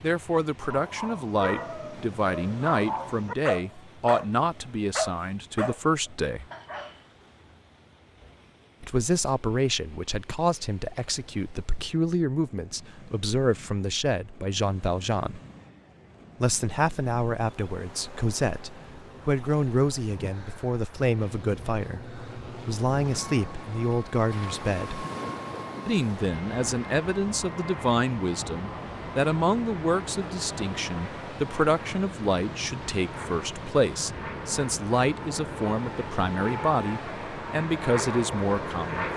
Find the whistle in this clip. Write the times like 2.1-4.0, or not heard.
not heard.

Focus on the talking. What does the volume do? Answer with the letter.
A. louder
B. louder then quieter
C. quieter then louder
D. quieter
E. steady
E.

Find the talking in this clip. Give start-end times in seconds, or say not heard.
0.0-6.5, 8.8-15.4, 16.4-25.1, 25.9-39.1.